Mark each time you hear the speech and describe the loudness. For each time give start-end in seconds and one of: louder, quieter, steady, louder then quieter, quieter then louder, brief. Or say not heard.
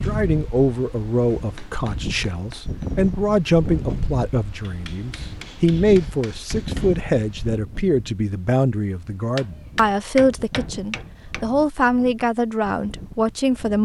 0.1-13.8 steady.